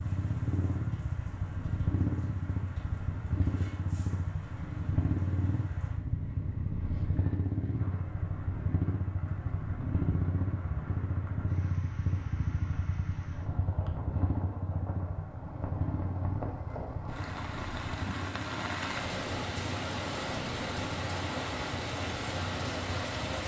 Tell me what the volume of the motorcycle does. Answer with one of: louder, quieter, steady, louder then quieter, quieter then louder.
quieter.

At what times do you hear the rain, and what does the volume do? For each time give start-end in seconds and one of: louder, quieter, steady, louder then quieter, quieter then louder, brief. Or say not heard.
0.0-23.4 louder.